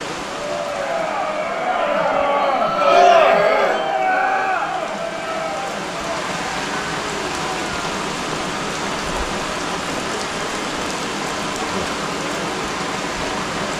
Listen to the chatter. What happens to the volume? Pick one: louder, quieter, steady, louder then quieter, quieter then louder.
quieter.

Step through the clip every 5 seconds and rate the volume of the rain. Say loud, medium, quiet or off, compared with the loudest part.
medium, loud, loud.